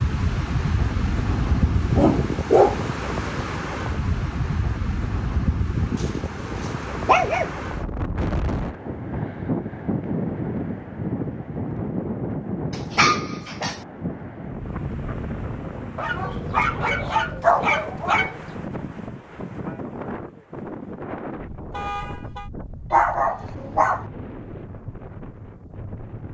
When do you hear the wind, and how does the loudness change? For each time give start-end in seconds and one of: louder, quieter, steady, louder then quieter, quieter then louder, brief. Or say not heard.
0.0-26.3 quieter.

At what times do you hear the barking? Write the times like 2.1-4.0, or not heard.
0.8-2.8, 6.0-7.5, 12.7-13.8, 15.9-18.6, 22.9-24.1.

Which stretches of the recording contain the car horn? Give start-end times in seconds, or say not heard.
21.7-22.5.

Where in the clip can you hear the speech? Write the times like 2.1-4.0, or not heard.
not heard.